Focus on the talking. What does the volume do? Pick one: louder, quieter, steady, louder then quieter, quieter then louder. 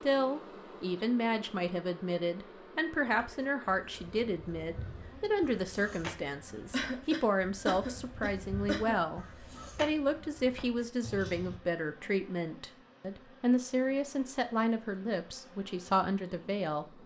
steady.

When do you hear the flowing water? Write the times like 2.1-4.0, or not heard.
not heard.